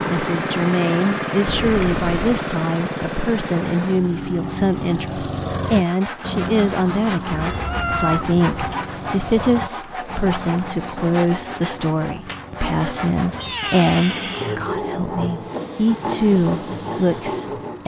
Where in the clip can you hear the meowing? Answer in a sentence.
You can hear the meowing from 1.4 to 2.4 s, from 7.3 to 8.8 s and from 13.2 to 14.6 s.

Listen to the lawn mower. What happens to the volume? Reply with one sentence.
The loudness of the lawn mower goes down.